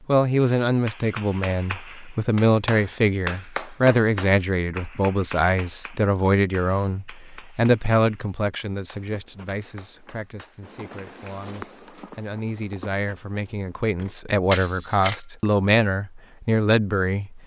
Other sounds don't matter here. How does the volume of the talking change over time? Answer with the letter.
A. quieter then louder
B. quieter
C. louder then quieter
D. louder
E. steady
A.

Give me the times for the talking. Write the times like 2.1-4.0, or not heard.
0.1-17.4.